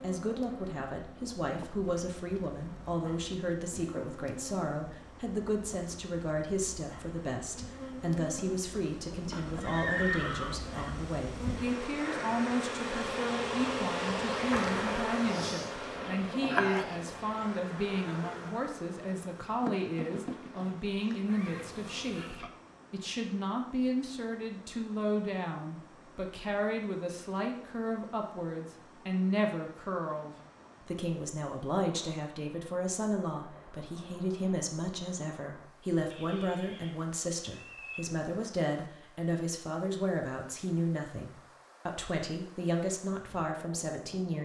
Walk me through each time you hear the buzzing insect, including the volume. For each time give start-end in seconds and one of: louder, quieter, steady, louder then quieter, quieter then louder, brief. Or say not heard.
0.0-22.4 louder then quieter.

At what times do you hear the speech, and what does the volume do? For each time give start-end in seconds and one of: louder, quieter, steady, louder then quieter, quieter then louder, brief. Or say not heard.
0.0-44.4 steady.